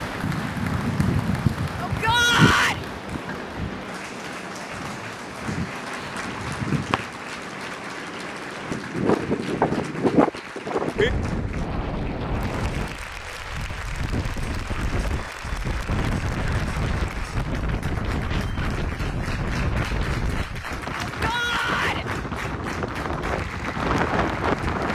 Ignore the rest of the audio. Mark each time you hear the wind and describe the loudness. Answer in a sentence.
The wind can be heard from 0.0 to 24.9 s, at a steady volume.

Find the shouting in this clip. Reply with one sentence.
The shouting can be heard from 1.8 to 2.8 s and from 21.1 to 22.1 s.